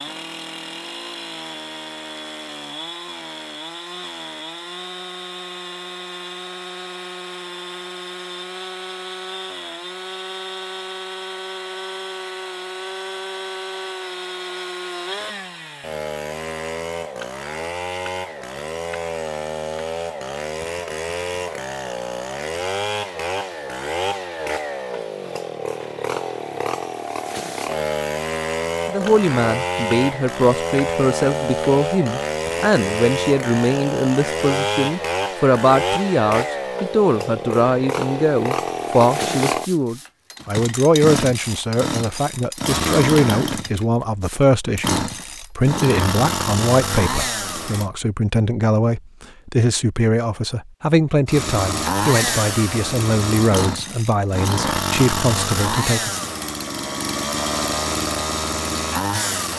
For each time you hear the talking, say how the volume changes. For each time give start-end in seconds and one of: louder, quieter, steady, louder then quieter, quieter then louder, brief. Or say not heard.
28.9-56.3 steady.